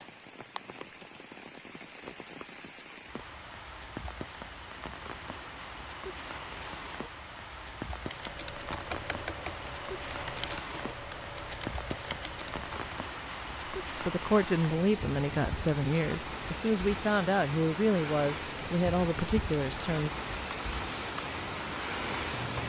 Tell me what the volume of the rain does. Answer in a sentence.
The loudness of the rain goes up.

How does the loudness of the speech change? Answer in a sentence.
The volume of the speech stays about the same.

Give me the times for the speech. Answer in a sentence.
The speech can be heard from 13.9 to 20.1 s.